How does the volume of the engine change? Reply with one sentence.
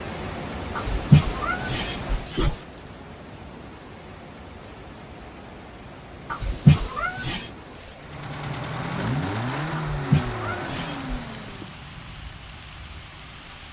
The loudness of the engine goes down.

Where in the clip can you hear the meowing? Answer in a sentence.
The meowing can be heard from 0.8 to 2.5 s, from 6.3 to 7.5 s and from 9.8 to 11.1 s.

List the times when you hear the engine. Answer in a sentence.
You can hear the engine from 8.0 to 13.6 s.